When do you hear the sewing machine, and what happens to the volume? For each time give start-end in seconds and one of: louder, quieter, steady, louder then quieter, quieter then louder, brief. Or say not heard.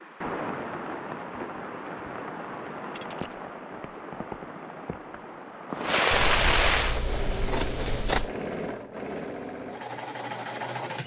6.8-11.0 steady.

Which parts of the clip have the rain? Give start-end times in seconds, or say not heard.
0.0-7.0.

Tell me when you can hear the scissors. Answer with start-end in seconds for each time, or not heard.
6.1-8.3.